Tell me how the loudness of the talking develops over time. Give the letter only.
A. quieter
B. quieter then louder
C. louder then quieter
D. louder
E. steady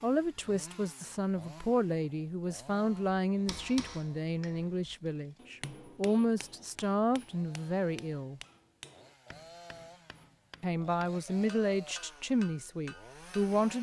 E.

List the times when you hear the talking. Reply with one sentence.
The talking can be heard from 0.0 to 8.4 s and from 10.6 to 13.7 s.